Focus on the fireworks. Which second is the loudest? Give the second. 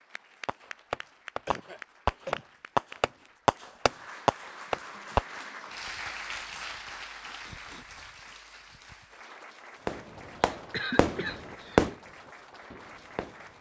12 s.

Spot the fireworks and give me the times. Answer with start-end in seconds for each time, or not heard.
0.5-5.9, 9.8-13.5.